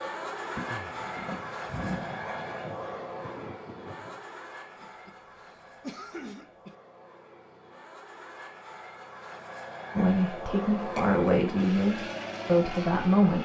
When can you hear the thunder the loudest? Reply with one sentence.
The volume of the thunder peaks at 2 seconds.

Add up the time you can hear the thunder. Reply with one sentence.
You can hear the thunder for 3 seconds altogether.